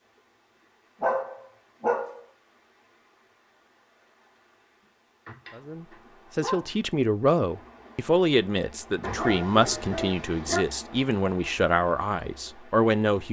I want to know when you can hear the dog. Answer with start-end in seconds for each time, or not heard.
1.0-2.2, 5.2-6.8, 9.0-10.7.